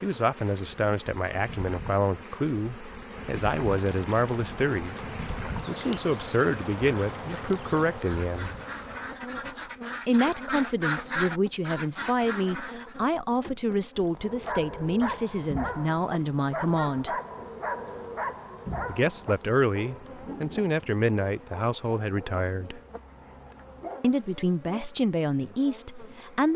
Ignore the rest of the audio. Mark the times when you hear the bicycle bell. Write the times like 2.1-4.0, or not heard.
not heard.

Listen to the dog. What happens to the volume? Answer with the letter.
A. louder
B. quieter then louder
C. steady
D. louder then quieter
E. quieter
E.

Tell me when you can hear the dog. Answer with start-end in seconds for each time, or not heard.
14.2-24.1.